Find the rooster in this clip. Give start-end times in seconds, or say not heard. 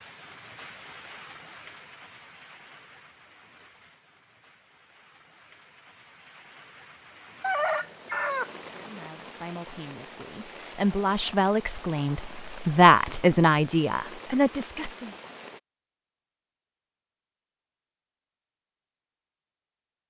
7.4-9.2.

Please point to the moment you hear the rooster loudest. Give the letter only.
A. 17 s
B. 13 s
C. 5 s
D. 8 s
D.